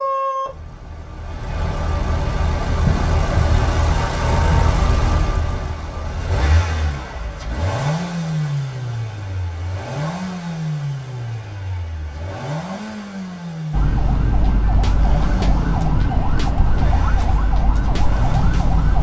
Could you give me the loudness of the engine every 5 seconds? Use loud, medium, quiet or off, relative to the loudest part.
loud, loud, medium, medium.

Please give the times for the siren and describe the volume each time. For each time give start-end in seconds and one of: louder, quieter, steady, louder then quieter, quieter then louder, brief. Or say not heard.
13.7-18.9 steady.